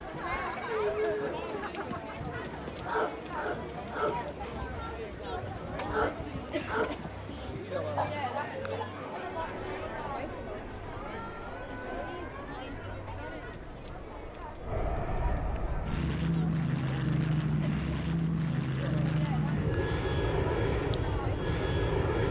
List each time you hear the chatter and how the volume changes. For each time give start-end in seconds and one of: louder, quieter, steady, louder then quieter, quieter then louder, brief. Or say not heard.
0.0-22.2 quieter.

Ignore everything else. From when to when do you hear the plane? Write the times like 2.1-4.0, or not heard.
9.3-22.2.